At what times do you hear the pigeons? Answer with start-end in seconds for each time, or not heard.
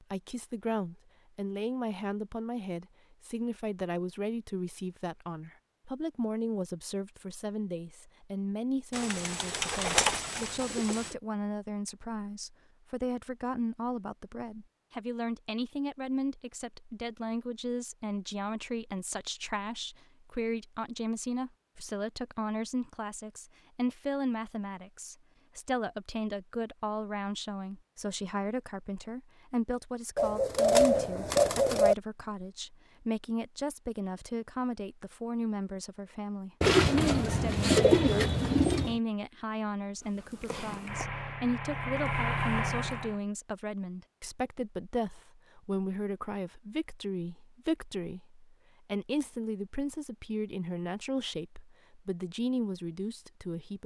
8.9-11.2, 30.1-31.9, 36.6-39.0.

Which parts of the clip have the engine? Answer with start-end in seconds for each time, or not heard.
40.0-43.2.